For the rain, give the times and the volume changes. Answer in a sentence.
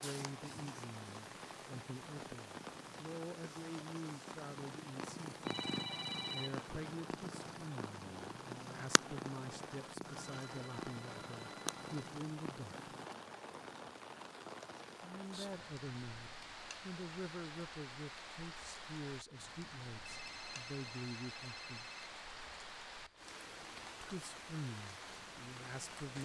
The rain can be heard from 0.0 to 26.2 s, at a steady volume.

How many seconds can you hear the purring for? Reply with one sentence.
The purring can be heard for 13 seconds in total.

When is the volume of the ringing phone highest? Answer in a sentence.
The volume of the ringing phone peaks at 6 seconds.